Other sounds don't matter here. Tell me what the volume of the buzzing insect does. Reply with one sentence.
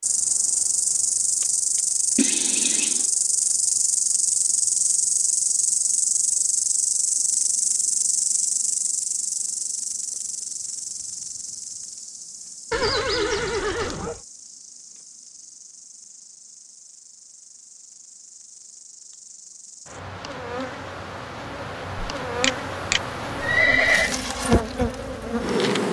The volume of the buzzing insect goes down, then up.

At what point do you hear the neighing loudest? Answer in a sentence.
The loudest moment of the neighing is at 24 seconds.